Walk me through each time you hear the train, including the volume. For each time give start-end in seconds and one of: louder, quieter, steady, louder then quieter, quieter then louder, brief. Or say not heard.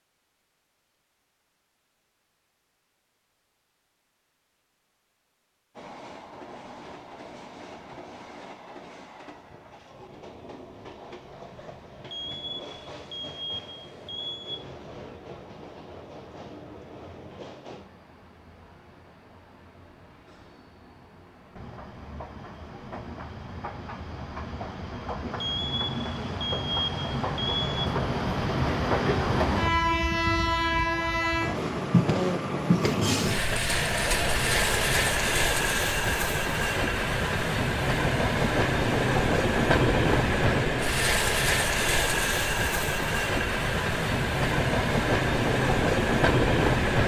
5.8-47.0 louder.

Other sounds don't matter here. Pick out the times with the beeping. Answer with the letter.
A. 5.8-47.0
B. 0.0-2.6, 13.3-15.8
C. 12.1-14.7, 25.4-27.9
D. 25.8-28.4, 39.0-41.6
C.